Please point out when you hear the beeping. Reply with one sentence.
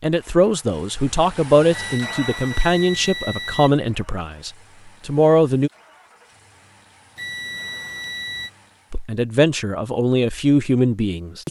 The beeping can be heard from 1.7 to 3.7 s and from 7.2 to 8.5 s.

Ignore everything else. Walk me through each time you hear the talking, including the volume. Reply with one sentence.
You can hear the talking from 0.0 to 5.7 s, at a steady volume; and briefly from 8.9 to 11.4 s.